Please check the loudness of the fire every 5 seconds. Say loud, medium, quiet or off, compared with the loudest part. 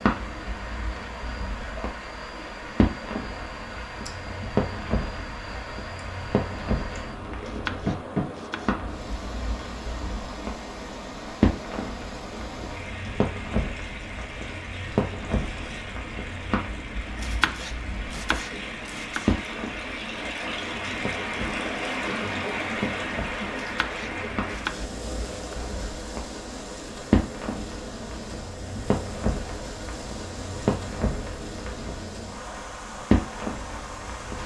loud, loud, loud, loud, medium, loud, loud.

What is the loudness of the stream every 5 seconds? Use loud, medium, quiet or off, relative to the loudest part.
medium, medium, medium, medium, loud, medium, medium.